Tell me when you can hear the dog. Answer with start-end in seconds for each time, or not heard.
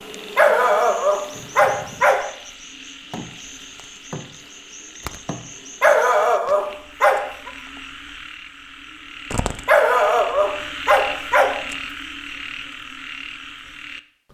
0.3-2.3, 5.8-7.5, 9.7-11.6.